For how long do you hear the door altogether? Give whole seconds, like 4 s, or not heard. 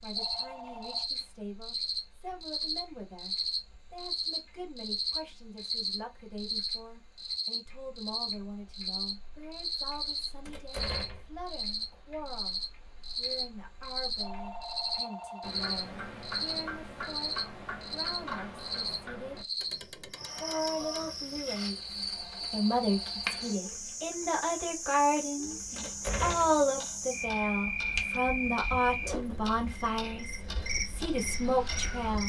2 s.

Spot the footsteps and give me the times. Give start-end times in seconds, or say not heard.
not heard.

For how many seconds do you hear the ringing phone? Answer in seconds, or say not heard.
4 s.